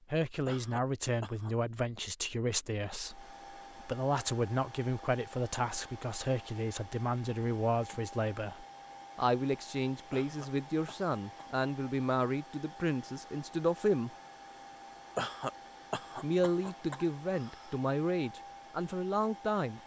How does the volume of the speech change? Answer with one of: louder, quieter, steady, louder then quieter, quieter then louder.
steady.